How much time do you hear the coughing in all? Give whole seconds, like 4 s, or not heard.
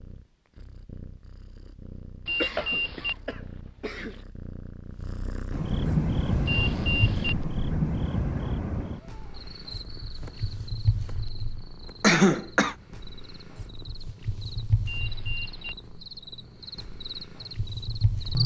3 s.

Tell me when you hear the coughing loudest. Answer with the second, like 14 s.
12 s.